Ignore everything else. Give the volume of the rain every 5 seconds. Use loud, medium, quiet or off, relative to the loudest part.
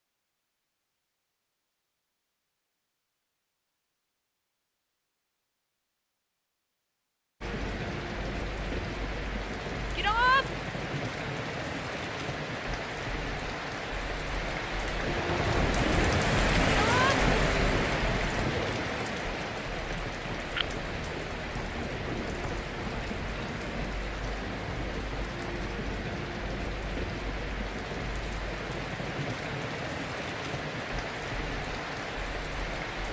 off, medium, medium, loud, medium, medium, medium.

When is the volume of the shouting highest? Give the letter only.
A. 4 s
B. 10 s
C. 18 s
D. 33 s
B.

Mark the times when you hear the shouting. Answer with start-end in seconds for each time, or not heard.
9.9-10.4, 16.6-17.2.